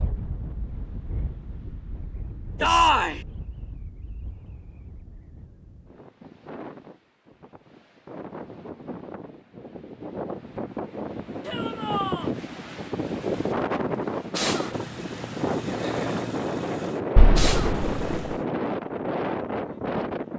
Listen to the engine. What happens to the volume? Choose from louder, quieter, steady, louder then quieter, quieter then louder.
louder.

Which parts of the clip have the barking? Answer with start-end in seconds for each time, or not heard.
not heard.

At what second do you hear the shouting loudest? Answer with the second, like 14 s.
3 s.